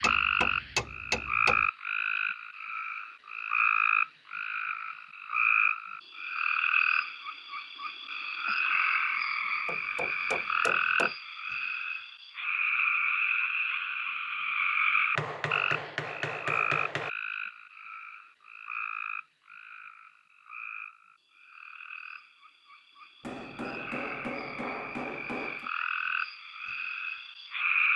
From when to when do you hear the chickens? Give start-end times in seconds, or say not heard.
not heard.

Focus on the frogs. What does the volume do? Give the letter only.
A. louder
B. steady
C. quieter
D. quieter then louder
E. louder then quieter
C.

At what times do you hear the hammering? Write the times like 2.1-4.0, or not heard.
0.0-1.6, 9.7-11.1, 15.2-17.1, 23.2-25.7.